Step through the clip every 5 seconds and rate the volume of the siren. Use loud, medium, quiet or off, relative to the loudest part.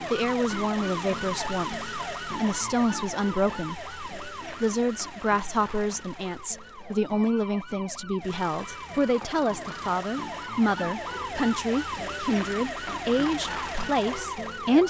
loud, medium, loud.